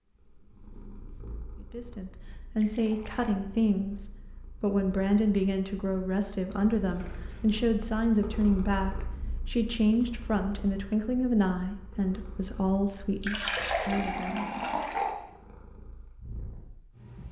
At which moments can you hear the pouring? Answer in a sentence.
You can hear the pouring from 2.5 to 3.4 s, from 6.5 to 7.5 s and from 13.2 to 15.2 s.